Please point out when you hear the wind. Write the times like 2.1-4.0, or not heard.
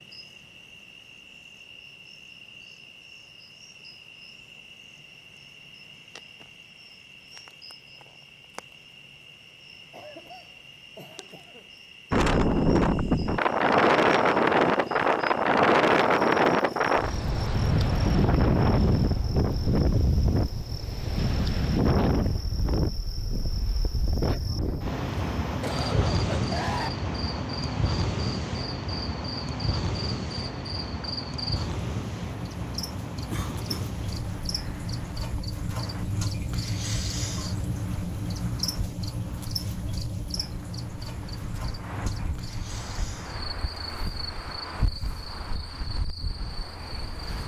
12.1-47.4.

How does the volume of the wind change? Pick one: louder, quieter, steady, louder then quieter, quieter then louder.
quieter.